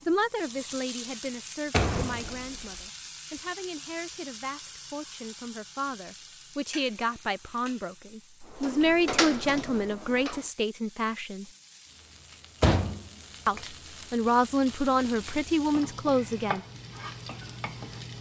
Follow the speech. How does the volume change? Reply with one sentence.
The volume of the speech goes down, then up.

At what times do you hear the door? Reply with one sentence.
The door can be heard from 1.7 to 2.8 s, from 8.4 to 10.4 s and from 12.6 to 13.1 s.